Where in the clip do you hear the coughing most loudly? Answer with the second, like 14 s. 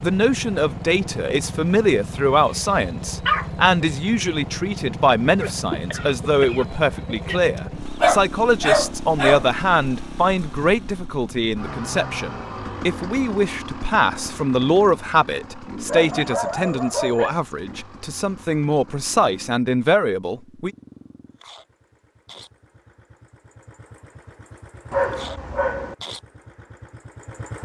6 s.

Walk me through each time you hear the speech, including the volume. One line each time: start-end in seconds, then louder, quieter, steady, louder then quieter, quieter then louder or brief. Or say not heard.
0.0-20.7 steady.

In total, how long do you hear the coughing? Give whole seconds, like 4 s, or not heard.
2 s.